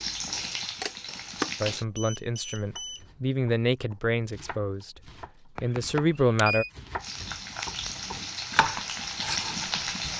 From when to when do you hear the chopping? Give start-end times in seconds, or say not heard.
2.6-10.1.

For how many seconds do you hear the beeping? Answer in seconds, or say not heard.
3 s.